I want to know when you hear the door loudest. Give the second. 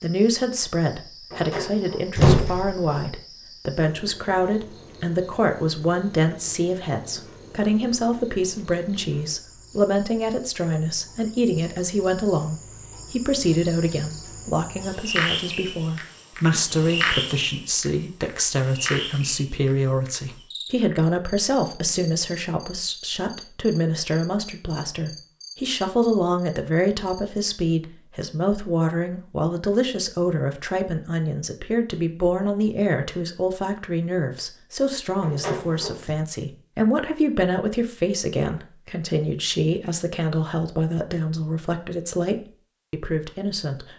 2 s.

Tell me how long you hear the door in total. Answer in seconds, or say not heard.
3 s.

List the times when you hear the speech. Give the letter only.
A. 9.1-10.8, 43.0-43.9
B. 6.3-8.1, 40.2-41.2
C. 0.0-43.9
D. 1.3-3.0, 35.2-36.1
C.